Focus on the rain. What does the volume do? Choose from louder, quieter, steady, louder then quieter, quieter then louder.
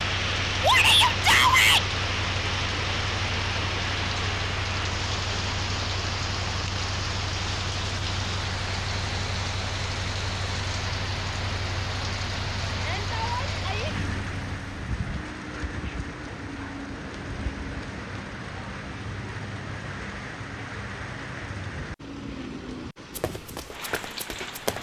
quieter.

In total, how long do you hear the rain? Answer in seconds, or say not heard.
25 s.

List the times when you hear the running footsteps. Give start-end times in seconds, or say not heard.
23.1-24.7.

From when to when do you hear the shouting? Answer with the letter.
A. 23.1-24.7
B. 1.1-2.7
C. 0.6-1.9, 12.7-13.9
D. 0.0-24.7
C.